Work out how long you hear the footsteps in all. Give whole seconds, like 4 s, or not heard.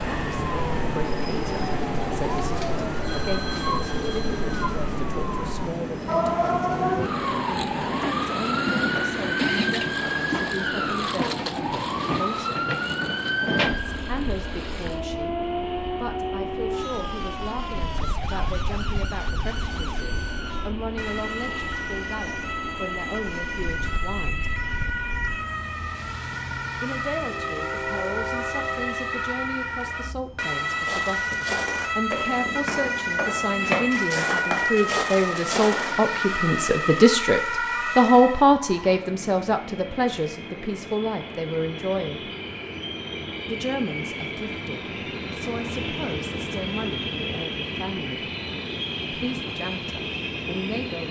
5 s.